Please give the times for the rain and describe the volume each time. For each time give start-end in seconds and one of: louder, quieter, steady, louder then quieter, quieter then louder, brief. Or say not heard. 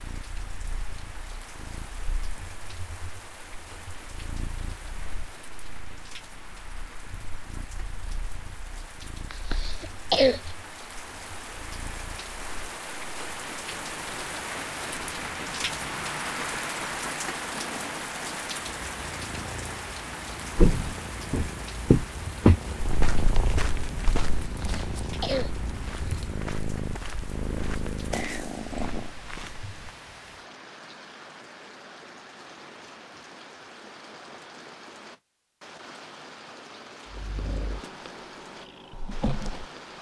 0.0-39.9 louder then quieter.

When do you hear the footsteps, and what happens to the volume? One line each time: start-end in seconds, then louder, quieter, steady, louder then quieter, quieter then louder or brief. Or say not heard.
20.6-29.9 quieter.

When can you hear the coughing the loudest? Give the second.
10 s.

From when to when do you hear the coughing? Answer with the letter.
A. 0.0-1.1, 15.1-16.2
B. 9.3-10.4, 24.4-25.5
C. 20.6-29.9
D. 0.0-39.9
B.